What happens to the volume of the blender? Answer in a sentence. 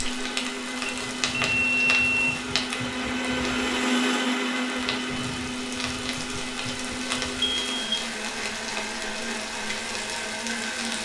The loudness of the blender goes up, then down.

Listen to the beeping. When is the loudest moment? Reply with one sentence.
The loudest moment of the beeping is at 2 seconds.